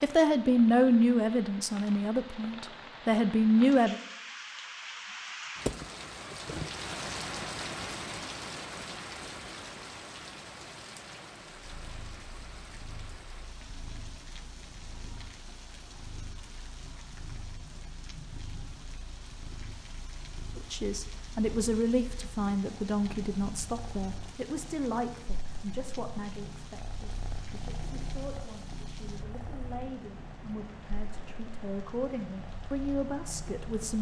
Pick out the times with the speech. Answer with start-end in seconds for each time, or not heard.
0.0-4.0, 20.6-33.9.